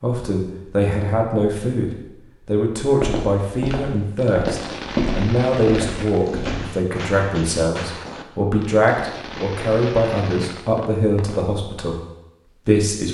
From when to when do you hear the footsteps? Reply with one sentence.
The footsteps can be heard from 2.9 to 6.7 s.